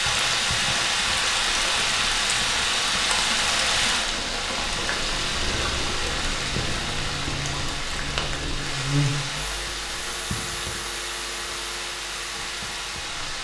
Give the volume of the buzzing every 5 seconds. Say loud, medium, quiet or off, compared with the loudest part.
off, loud, medium.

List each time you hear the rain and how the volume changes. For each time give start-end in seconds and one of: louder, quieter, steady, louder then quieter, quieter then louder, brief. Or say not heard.
0.0-13.3 quieter.